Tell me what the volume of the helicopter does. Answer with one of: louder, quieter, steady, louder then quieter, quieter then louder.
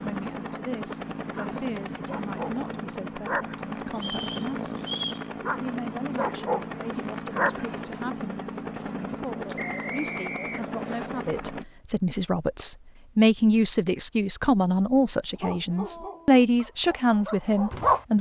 steady.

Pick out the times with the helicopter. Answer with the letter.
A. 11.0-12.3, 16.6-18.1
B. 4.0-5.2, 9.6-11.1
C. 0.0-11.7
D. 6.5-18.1
C.